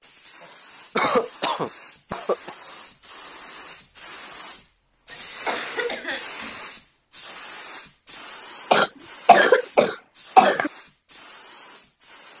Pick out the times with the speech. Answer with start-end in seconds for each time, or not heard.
not heard.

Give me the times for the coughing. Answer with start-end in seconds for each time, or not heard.
0.4-2.5, 5.1-6.5, 8.7-10.7.